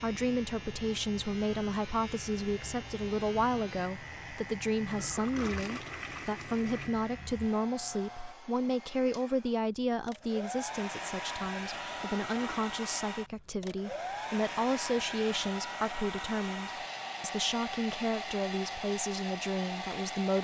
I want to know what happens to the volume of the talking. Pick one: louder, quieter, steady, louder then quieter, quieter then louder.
steady.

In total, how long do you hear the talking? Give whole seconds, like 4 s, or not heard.
20 s.